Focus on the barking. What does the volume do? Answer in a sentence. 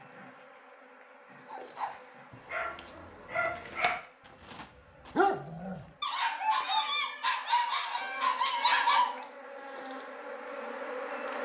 The volume of the barking goes up.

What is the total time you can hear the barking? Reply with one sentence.
You can hear the barking for 8 seconds altogether.